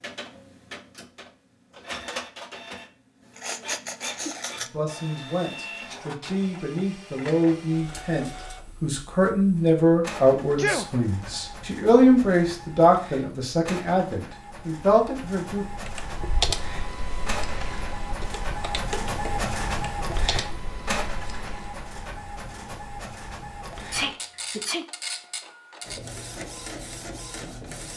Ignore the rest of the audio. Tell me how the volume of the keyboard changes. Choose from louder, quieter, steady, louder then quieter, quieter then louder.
quieter.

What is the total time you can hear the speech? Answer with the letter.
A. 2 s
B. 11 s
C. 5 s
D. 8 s
B.